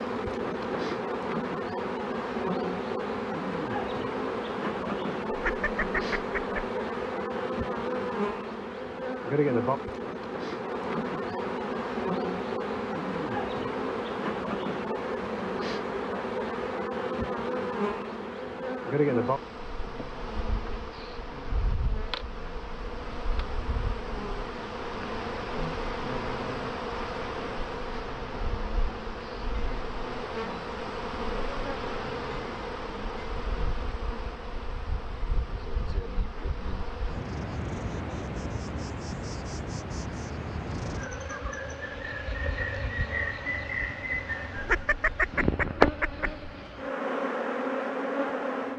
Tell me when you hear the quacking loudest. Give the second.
45 s.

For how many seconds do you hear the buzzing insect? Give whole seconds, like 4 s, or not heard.
49 s.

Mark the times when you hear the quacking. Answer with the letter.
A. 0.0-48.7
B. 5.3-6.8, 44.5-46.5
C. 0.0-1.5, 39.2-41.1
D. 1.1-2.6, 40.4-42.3
B.